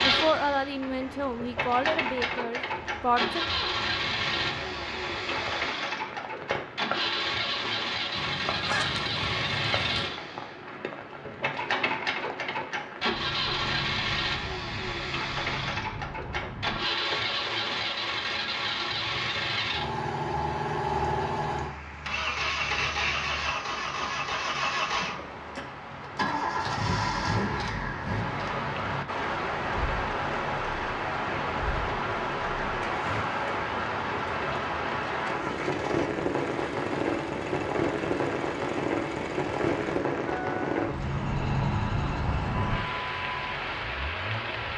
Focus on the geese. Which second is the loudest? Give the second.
9 s.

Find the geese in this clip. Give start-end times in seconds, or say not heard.
8.2-10.1.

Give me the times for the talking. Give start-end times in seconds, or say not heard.
0.0-3.5.